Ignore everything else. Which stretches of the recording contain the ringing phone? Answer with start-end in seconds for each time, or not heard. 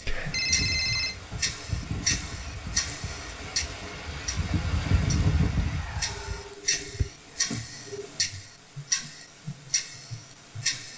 0.3-1.1, 6.1-8.1.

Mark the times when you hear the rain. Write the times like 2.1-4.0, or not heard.
0.0-6.5.